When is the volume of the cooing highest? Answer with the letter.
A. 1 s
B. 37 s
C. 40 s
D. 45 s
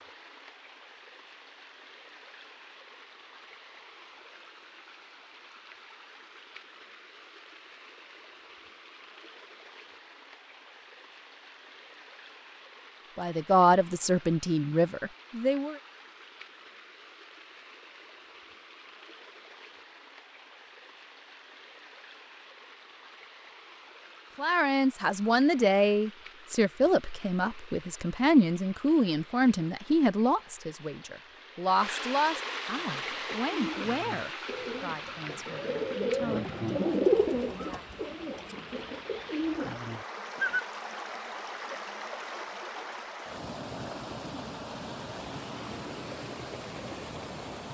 B.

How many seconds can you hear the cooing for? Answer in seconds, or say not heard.
8 s.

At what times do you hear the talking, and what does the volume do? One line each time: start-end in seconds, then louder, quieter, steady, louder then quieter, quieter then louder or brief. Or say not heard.
13.2-15.8 brief
24.4-37.9 quieter.